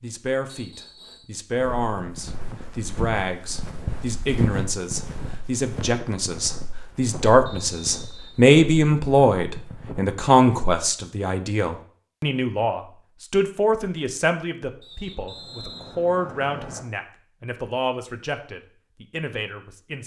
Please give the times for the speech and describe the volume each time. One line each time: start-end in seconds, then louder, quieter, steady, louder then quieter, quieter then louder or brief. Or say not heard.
0.0-20.0 louder then quieter.